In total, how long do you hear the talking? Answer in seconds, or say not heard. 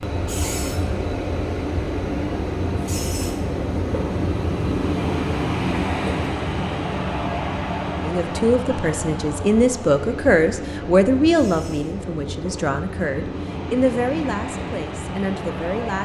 8 s.